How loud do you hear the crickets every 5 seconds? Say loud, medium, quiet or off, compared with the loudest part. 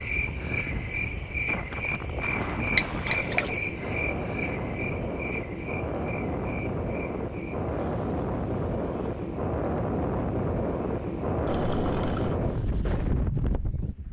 loud, medium, off.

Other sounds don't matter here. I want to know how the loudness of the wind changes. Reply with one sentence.
The loudness of the wind goes up.